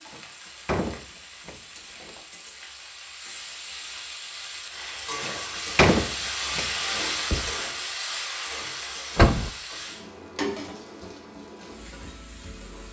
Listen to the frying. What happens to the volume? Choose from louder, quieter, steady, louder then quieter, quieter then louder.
louder then quieter.